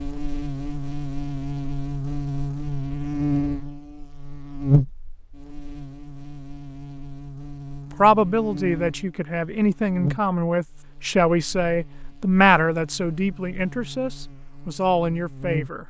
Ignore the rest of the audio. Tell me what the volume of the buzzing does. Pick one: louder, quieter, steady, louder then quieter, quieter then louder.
quieter.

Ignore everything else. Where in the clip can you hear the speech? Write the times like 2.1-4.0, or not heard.
7.9-15.8.